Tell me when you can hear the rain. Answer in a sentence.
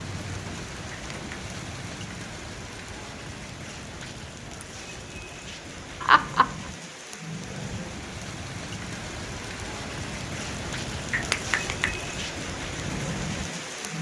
The rain can be heard from 0.0 to 13.9 s.